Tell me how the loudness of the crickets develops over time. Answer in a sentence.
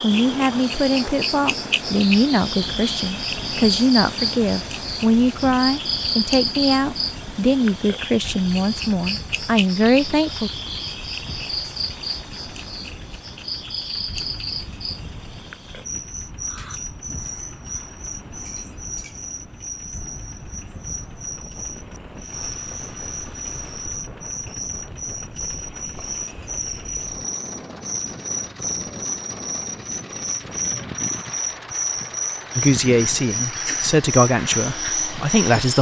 The volume of the crickets goes down, then up.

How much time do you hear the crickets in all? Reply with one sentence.
The crickets can be heard for 36 seconds in total.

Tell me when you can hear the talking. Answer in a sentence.
The talking can be heard from 0.0 to 10.5 s and from 32.5 to 35.7 s.